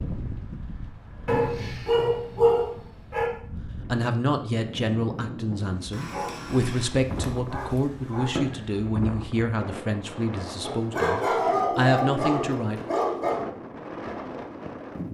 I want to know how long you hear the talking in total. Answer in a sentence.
The talking can be heard for 9 seconds in total.